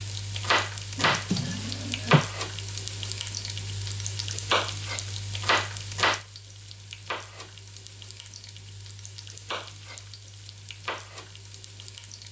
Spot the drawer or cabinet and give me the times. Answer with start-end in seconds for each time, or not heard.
0.9-2.2.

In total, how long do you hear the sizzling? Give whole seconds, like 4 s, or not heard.
12 s.